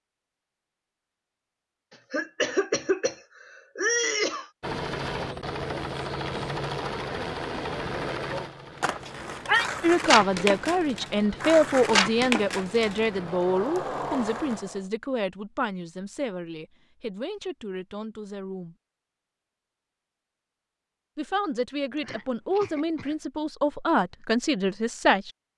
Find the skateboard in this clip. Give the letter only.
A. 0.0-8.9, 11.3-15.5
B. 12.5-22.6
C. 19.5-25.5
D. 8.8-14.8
D.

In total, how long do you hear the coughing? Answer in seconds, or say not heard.
4 s.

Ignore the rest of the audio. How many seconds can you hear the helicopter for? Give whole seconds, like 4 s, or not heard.
10 s.